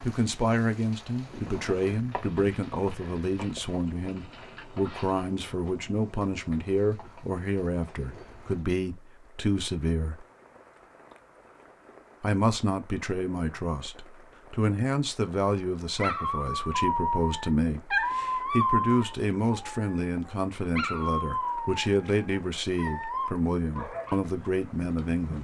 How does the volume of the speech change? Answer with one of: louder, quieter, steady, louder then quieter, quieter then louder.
steady.